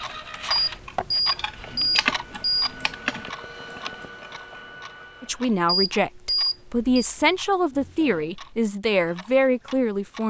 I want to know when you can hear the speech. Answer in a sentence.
You can hear the speech from 5.2 to 10.2 s.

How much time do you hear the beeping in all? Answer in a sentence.
The beeping can be heard for 4 seconds in total.